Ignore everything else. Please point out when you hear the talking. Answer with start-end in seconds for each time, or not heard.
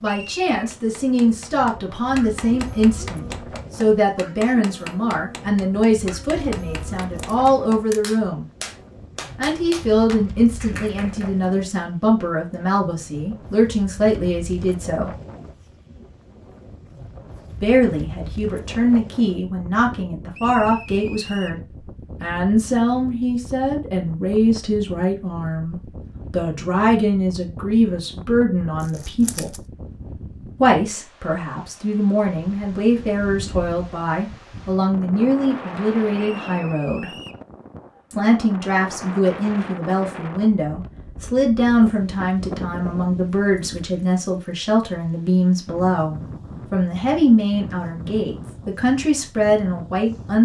0.0-8.4, 9.3-15.2, 17.6-21.6, 22.2-29.6, 30.6-37.1, 38.1-50.4.